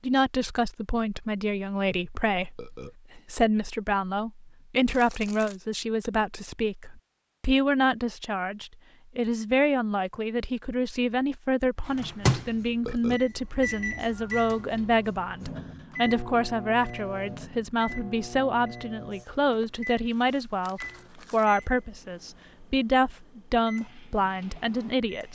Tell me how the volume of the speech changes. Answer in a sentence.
The loudness of the speech stays about the same.